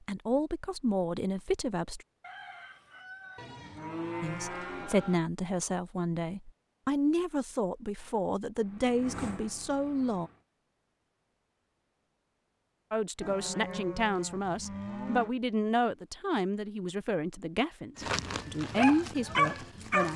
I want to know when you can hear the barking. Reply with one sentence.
The barking can be heard from 17.9 to 20.1 s.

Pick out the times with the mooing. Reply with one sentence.
The mooing can be heard from 3.4 to 5.2 s and from 13.2 to 15.3 s.